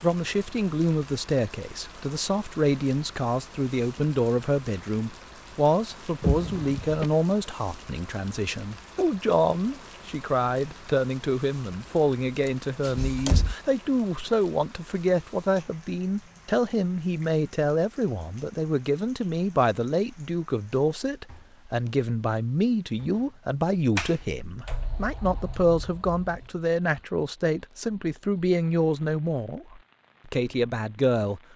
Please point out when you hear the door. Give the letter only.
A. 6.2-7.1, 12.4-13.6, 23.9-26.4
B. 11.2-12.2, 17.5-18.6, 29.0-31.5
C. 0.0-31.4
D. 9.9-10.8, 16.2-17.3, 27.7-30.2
A.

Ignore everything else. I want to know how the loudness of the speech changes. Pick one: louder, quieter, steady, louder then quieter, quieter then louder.
steady.